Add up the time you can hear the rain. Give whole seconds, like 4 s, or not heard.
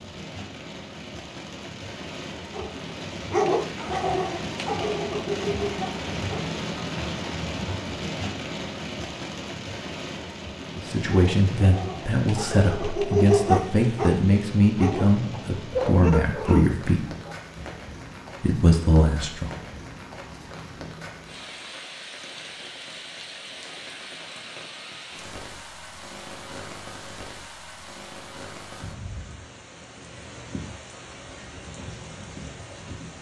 33 s.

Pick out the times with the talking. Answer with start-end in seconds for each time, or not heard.
10.8-17.1, 18.4-19.6.